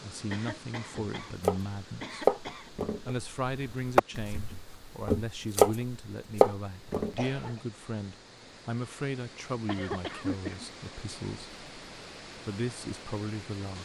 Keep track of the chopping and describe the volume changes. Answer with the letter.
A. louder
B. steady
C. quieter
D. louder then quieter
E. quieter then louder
E.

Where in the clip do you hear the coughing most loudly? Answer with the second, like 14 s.
10 s.